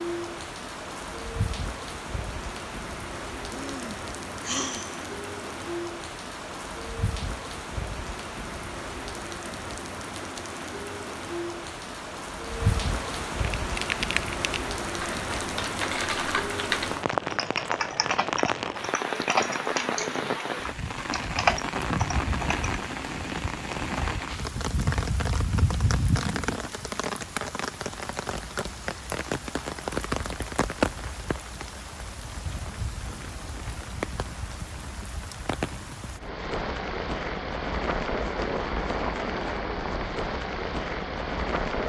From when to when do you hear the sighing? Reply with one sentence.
The sighing can be heard from 3.5 to 5.0 s.